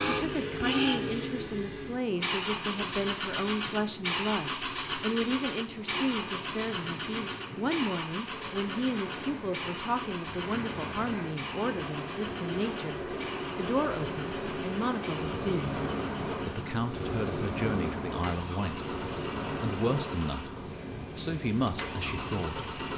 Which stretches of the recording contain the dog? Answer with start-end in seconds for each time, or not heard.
not heard.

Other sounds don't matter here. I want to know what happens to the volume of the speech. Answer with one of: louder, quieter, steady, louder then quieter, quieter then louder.
steady.